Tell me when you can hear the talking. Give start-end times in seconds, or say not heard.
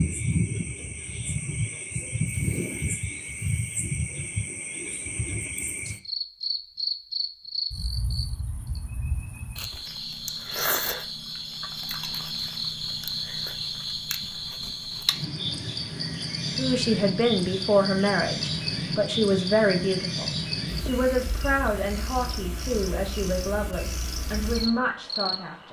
16.6-25.6.